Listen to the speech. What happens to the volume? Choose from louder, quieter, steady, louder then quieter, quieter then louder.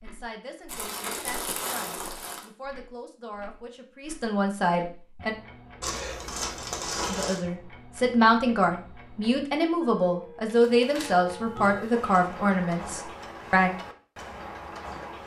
louder.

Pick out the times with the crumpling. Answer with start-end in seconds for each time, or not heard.
0.7-2.5, 5.8-7.4, 10.4-11.9.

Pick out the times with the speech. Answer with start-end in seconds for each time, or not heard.
0.0-5.3, 7.0-13.7.